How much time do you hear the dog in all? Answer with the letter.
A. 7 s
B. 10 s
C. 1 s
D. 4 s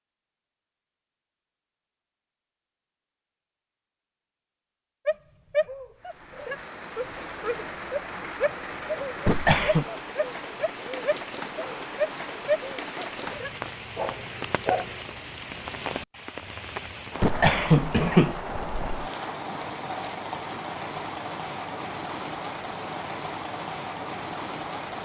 B.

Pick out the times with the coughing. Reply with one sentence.
The coughing can be heard from 9.2 to 9.8 s and from 17.2 to 19.1 s.